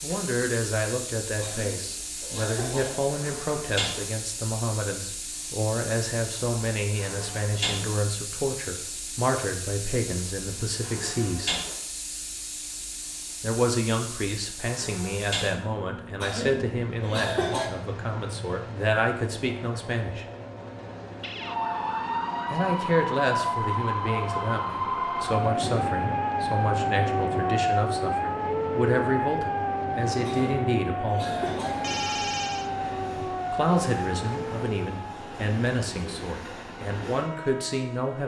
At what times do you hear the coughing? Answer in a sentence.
The coughing can be heard from 1.4 to 3.1 s, from 16.2 to 17.7 s and from 30.2 to 31.9 s.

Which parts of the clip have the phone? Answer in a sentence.
You can hear the phone from 31.8 to 32.7 s.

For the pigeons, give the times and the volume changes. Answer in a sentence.
You can't hear the pigeons here.